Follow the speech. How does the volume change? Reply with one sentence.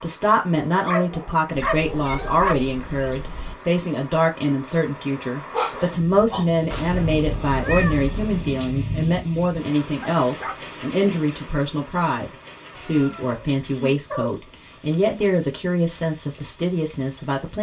The loudness of the speech stays about the same.